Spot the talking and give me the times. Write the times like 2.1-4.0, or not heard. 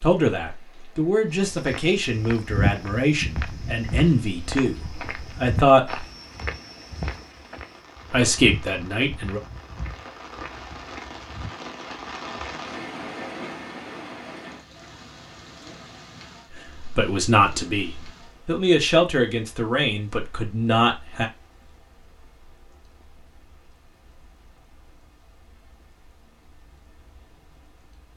0.0-6.0, 8.1-9.4, 16.8-21.3.